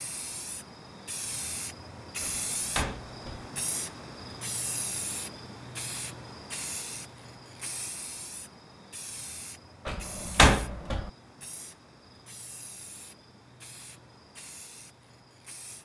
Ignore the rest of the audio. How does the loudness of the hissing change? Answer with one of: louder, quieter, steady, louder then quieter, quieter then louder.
quieter.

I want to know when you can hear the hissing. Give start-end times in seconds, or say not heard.
0.0-15.7.